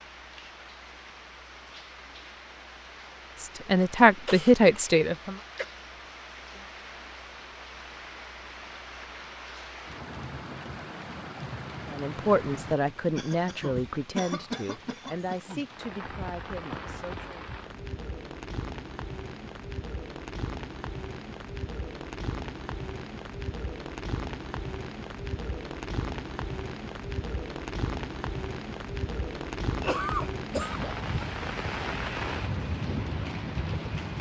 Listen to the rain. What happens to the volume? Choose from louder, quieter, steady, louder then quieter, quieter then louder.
louder.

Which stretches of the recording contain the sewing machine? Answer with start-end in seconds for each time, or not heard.
not heard.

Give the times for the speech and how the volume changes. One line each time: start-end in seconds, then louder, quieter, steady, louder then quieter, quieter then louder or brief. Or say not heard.
3.4-5.3 brief
11.9-17.6 quieter.